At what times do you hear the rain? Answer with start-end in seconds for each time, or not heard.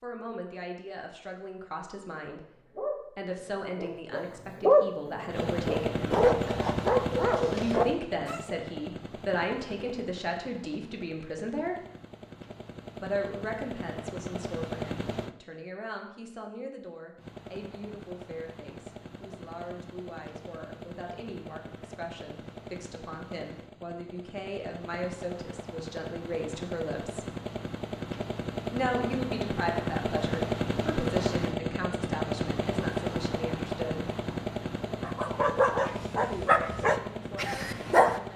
not heard.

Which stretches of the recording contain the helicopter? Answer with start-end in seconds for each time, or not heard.
5.2-15.3, 17.1-38.3.